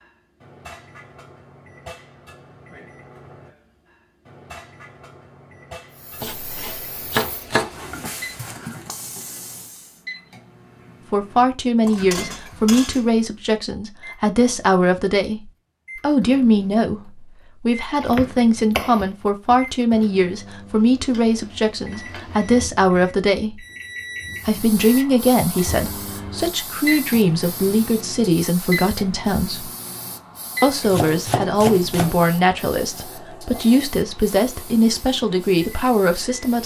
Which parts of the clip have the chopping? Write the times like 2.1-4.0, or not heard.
6.2-7.8, 18.0-19.6, 30.9-32.3.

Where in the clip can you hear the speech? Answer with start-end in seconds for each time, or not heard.
11.1-23.6, 24.4-29.7, 30.6-36.6.